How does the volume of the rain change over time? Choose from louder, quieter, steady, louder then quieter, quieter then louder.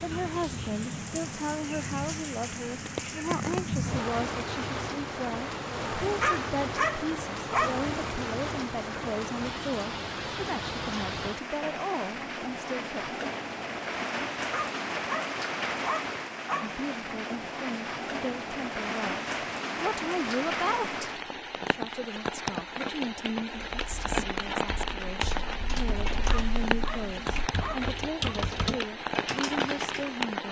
steady.